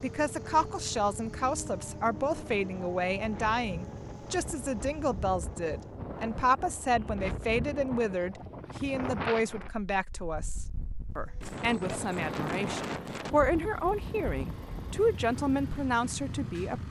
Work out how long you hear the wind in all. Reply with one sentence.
You can hear the wind for 17 seconds altogether.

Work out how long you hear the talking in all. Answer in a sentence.
You can hear the talking for 17 seconds altogether.